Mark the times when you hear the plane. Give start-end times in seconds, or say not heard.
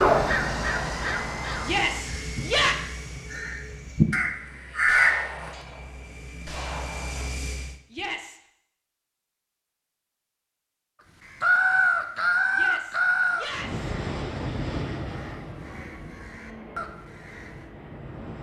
0.0-7.8, 13.5-18.3.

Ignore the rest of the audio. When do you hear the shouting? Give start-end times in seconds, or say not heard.
1.6-2.8, 7.9-8.4, 12.5-13.9.